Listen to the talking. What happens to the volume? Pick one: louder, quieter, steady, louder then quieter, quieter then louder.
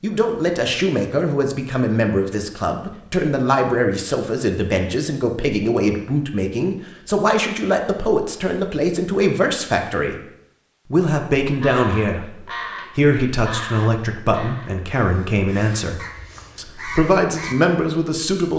steady.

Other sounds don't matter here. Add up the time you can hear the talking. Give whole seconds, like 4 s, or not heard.
18 s.